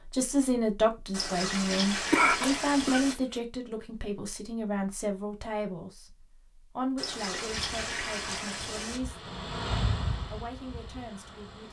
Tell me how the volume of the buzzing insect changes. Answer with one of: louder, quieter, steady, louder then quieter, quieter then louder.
louder then quieter.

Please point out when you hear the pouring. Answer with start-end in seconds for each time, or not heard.
1.1-3.1, 7.0-9.0.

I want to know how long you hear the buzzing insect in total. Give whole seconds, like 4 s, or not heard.
4 s.